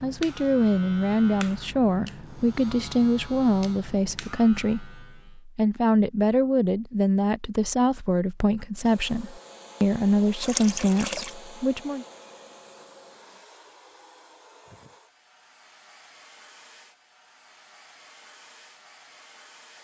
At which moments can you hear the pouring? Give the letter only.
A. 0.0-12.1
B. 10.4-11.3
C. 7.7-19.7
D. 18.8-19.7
B.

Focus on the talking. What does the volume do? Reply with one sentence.
The volume of the talking stays about the same.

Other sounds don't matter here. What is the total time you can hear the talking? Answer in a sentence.
You can hear the talking for 12 seconds altogether.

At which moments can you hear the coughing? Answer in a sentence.
You can't hear the coughing here.